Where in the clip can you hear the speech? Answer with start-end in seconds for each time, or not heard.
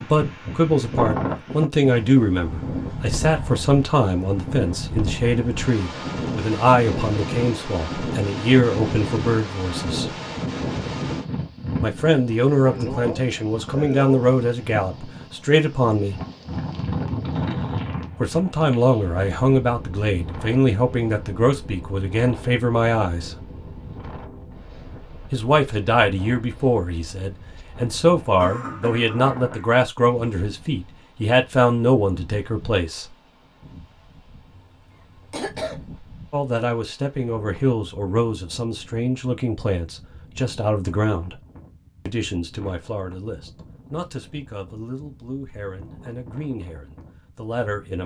0.1-10.2, 11.8-16.2, 18.2-23.4, 25.3-33.1, 36.3-41.4, 42.0-48.0.